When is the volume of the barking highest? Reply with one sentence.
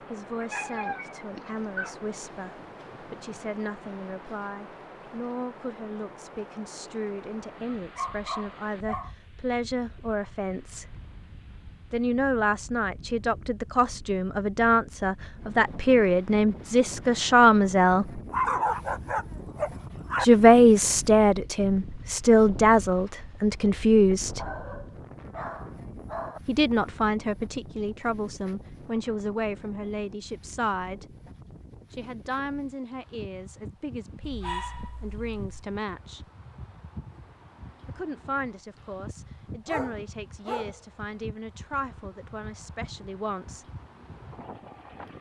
The loudest moment of the barking is at 19 seconds.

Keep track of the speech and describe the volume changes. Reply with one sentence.
The volume of the speech goes up, then down.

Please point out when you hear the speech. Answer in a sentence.
You can hear the speech from 0.0 to 10.9 s, from 11.9 to 18.2 s, from 20.2 to 24.5 s, from 26.4 to 31.1 s, from 31.9 to 36.2 s and from 37.9 to 43.6 s.